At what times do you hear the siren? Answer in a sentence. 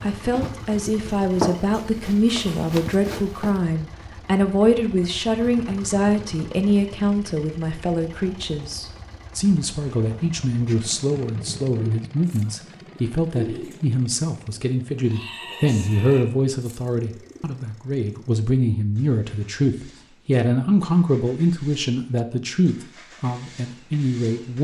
The siren can't be heard in this clip.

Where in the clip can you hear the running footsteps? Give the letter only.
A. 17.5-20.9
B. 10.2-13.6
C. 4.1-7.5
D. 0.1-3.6
D.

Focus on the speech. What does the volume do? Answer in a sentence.
The loudness of the speech stays about the same.